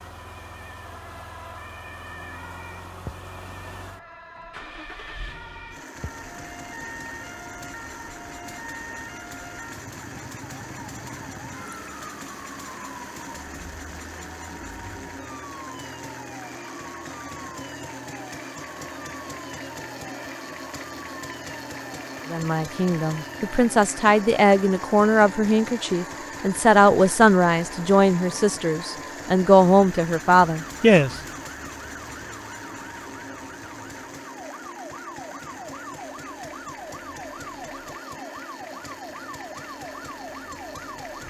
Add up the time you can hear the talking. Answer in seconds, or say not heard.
9 s.